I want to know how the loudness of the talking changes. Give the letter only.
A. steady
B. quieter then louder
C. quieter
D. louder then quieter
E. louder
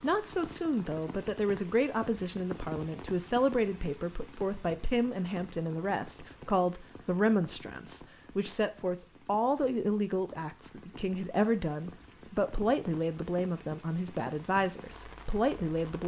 A.